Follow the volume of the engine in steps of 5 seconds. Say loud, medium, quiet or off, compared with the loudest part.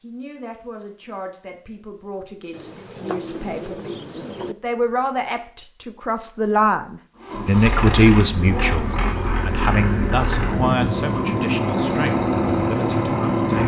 off, medium, loud.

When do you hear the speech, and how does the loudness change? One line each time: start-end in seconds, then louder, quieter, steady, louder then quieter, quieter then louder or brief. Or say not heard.
0.0-13.6 louder then quieter.